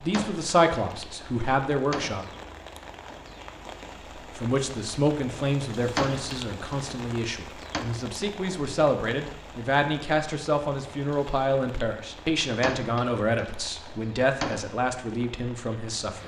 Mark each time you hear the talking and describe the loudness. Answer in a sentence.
The talking can be heard briefly from 0.0 to 2.2 s; and from 4.2 to 16.2 s, at a steady volume.